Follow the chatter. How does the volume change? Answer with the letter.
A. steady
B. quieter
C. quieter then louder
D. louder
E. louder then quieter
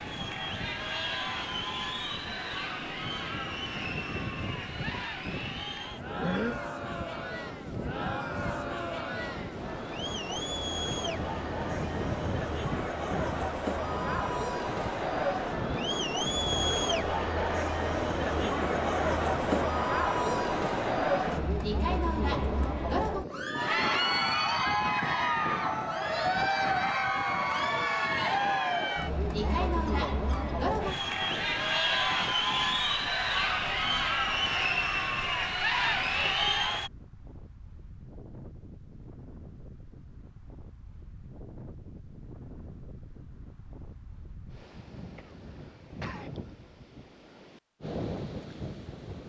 D.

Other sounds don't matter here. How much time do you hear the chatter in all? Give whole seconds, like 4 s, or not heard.
37 s.